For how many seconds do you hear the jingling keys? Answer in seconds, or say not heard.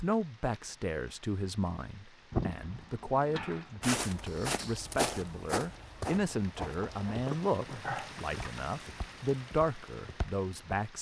3 s.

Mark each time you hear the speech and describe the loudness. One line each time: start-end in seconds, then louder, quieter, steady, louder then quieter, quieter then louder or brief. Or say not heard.
0.0-10.9 steady.